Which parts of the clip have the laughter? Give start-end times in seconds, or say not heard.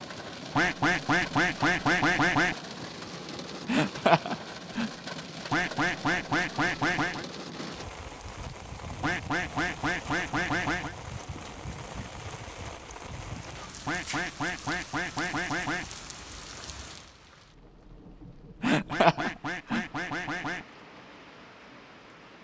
3.6-4.9, 18.6-19.9.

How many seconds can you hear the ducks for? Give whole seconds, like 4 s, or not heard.
10 s.